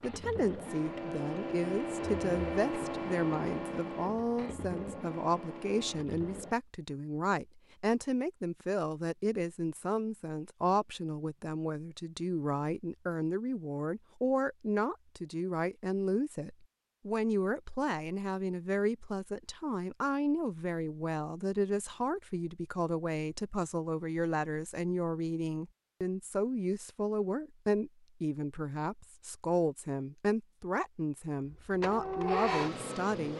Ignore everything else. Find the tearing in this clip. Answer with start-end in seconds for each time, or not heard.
not heard.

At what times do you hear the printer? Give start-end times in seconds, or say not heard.
0.0-6.6, 31.4-33.3.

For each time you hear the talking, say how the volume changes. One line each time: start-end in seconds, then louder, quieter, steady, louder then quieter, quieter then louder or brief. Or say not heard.
0.0-33.3 steady.